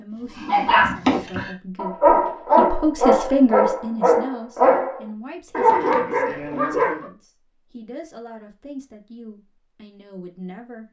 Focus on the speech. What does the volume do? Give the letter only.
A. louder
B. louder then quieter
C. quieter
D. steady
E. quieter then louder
B.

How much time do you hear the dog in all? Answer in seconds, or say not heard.
7 s.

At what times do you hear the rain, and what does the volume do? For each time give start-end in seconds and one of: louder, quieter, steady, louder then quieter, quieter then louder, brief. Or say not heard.
not heard.